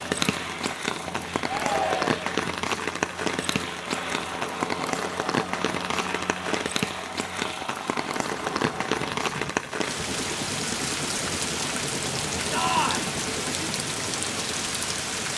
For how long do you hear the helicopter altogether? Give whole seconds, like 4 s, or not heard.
15 s.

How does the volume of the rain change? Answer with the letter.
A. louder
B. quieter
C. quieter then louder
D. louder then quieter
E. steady
E.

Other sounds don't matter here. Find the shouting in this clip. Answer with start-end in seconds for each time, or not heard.
1.4-2.4, 12.5-13.1.